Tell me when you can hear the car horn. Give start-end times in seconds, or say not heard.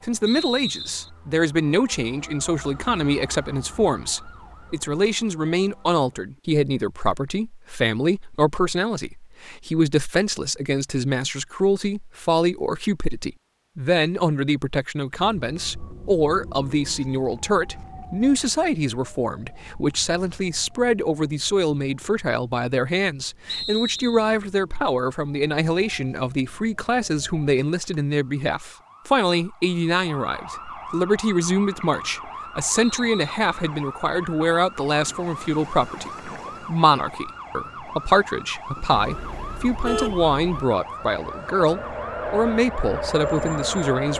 38.9-40.6.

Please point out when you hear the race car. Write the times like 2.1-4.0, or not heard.
40.7-44.1.